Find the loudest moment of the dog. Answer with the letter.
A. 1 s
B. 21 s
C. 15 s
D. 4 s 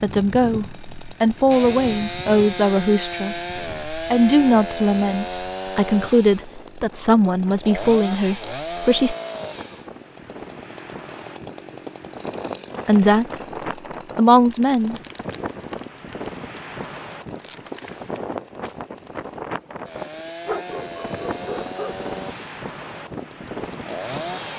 B.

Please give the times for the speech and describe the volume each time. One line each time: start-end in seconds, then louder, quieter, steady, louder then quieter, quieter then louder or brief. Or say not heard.
0.0-9.2 steady
12.8-13.4 brief
14.2-15.0 brief.